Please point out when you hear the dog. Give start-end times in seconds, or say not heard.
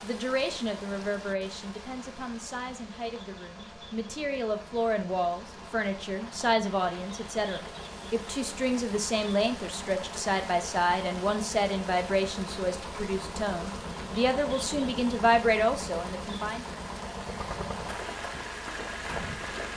not heard.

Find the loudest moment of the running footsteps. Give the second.
19 s.